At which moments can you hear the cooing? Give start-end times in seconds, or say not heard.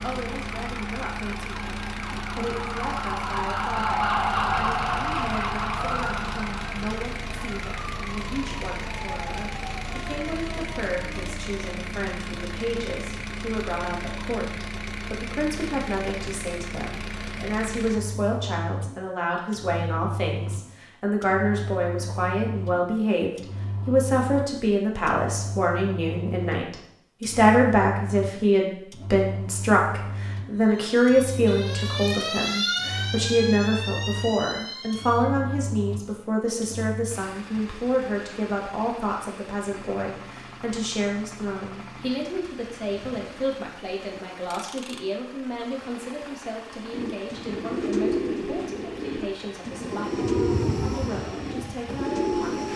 46.9-52.7.